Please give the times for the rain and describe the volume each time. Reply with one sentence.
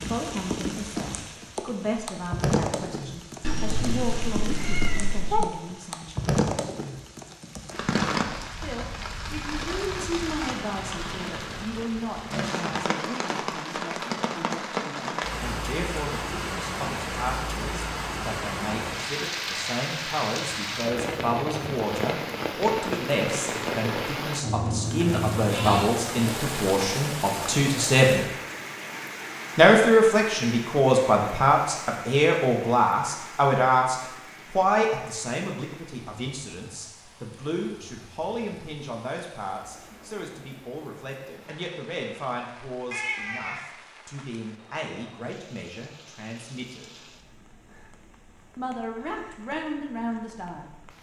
You can hear the rain from 0.0 to 50.9 s, getting quieter.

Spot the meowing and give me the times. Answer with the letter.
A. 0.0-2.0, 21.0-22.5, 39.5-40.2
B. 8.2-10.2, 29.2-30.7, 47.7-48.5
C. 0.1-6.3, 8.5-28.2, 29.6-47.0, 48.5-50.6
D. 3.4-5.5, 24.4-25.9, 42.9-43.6
D.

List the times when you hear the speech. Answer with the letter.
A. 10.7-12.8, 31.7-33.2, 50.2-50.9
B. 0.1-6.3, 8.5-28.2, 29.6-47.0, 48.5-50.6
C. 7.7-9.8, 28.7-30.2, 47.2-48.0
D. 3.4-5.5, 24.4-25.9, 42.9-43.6
B.